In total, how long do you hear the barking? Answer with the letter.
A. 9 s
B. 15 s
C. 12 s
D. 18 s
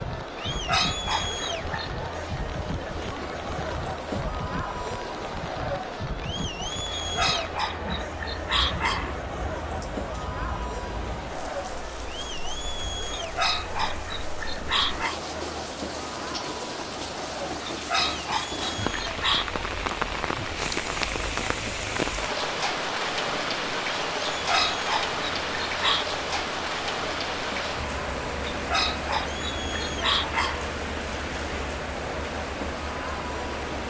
C.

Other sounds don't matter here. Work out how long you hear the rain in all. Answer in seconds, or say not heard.
34 s.